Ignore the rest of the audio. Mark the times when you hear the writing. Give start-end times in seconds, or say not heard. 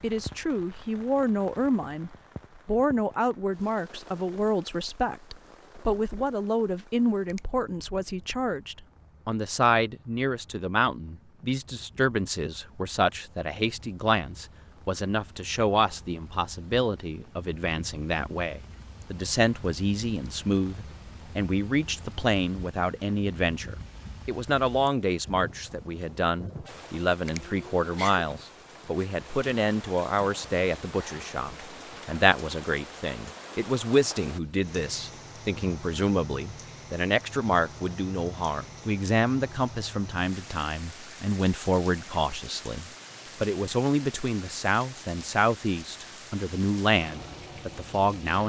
not heard.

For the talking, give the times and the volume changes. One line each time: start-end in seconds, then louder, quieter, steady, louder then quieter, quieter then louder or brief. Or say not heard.
0.0-48.4 steady.